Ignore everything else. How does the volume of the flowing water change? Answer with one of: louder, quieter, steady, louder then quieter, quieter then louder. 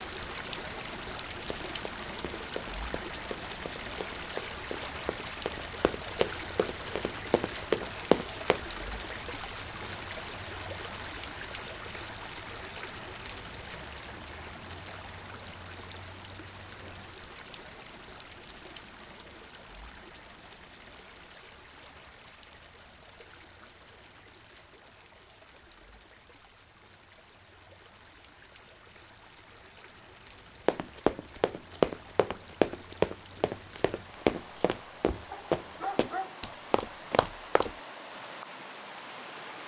quieter then louder.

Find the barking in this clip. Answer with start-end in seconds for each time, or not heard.
35.3-36.4.